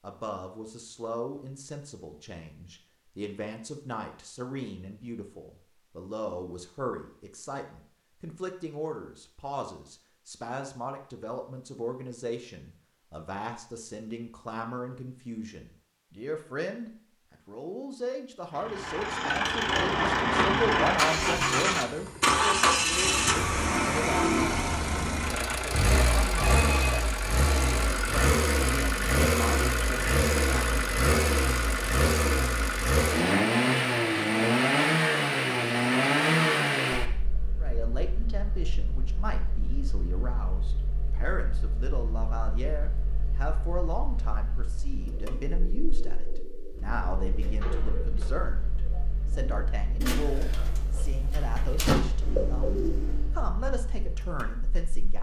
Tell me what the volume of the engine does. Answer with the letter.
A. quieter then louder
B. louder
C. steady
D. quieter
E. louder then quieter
D.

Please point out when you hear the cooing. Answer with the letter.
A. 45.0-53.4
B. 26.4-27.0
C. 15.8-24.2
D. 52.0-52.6
A.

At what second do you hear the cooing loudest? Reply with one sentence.
The loudest moment of the cooing is at 52 seconds.